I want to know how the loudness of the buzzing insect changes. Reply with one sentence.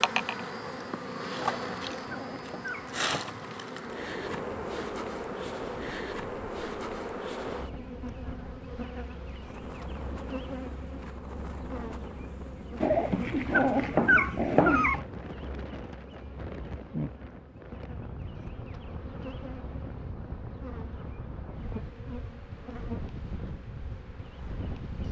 The loudness of the buzzing insect goes down.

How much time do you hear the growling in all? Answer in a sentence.
You can hear the growling for 4 seconds altogether.